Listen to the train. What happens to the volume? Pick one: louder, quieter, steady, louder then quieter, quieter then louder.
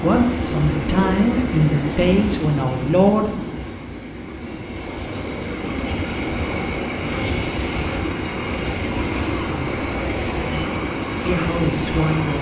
quieter then louder.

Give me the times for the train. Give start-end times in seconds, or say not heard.
0.0-12.3.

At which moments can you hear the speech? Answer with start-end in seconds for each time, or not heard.
0.0-3.4, 9.5-9.9, 11.2-12.3.